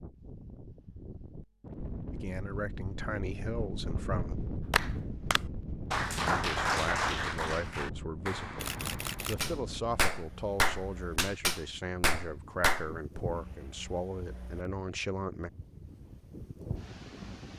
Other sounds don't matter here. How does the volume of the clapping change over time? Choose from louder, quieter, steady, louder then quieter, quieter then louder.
quieter then louder.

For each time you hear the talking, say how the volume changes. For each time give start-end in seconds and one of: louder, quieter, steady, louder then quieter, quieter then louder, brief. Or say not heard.
2.1-4.3 brief
6.2-15.5 steady.